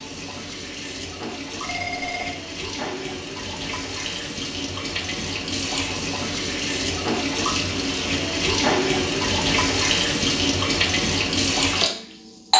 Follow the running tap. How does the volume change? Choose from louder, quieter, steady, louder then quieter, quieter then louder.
louder.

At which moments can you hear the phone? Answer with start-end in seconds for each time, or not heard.
1.6-2.4.